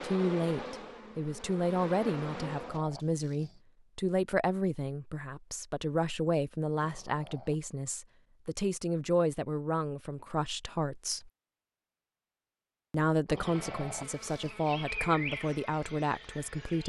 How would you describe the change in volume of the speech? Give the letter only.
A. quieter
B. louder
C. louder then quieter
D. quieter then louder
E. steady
E.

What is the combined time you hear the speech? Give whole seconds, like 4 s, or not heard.
15 s.